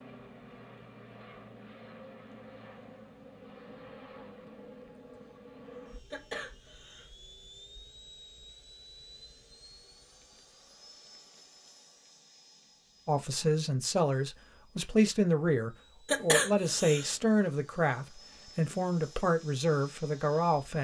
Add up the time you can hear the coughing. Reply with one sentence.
The coughing can be heard for 2 seconds in total.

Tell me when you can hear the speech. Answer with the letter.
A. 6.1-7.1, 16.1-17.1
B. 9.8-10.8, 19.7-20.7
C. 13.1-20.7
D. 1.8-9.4
C.